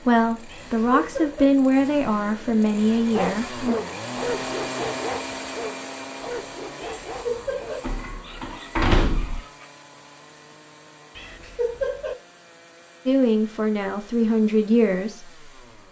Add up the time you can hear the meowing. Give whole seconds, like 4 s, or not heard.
3 s.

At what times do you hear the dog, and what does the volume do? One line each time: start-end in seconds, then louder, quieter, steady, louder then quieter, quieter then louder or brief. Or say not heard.
3.1-9.7 quieter.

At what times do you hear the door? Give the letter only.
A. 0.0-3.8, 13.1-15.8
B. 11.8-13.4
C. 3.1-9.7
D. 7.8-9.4
D.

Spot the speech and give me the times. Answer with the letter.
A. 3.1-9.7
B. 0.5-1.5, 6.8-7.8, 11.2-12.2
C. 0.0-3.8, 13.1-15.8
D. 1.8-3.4
C.